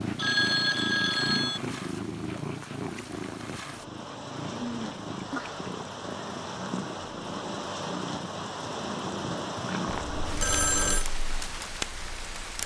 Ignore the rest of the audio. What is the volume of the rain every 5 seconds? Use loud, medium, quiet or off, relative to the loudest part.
medium, loud, loud.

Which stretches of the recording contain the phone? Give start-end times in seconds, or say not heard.
0.1-1.6, 4.6-5.6, 9.8-11.1.